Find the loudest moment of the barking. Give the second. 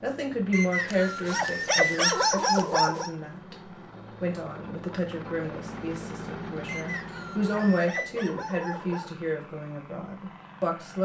2 s.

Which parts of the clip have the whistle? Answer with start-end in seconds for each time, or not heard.
0.5-2.3, 6.7-8.1.